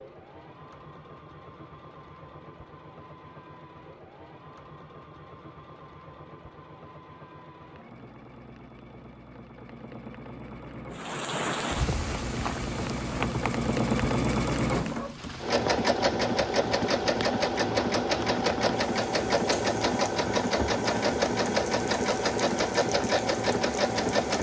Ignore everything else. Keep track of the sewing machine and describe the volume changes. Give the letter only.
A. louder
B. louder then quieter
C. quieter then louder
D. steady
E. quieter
A.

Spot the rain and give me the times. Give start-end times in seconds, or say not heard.
10.9-24.3.